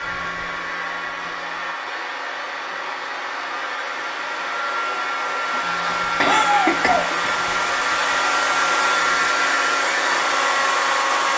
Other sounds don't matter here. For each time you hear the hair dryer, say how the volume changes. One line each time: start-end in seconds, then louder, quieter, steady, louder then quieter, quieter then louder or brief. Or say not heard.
0.0-11.3 louder.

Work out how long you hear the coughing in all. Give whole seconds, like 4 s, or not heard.
2 s.